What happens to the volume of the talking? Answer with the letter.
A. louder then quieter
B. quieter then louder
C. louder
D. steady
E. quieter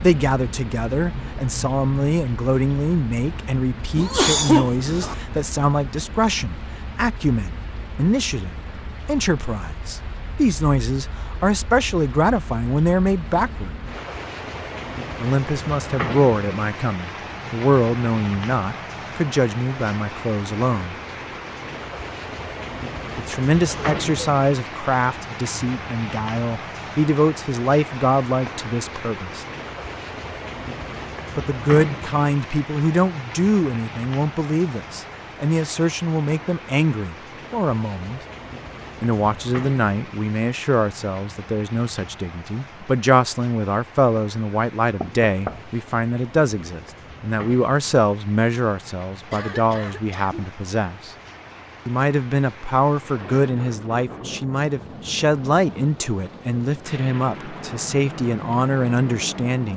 D.